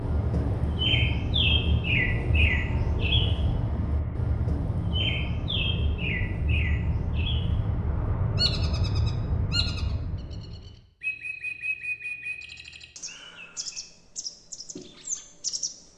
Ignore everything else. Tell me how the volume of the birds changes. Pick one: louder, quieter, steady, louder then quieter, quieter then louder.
quieter.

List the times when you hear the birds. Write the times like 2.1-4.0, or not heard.
0.0-15.9.